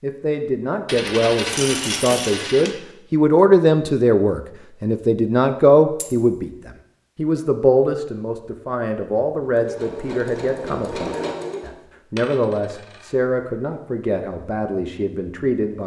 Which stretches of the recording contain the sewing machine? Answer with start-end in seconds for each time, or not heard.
9.4-11.8.